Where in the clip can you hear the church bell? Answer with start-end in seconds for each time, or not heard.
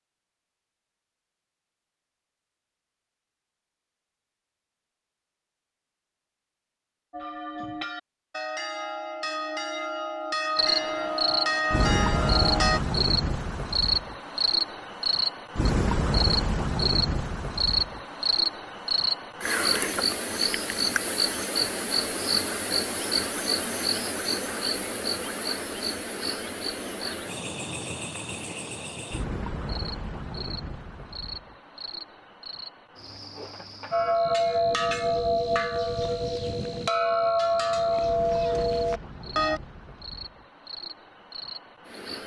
7.1-12.8, 33.9-39.6.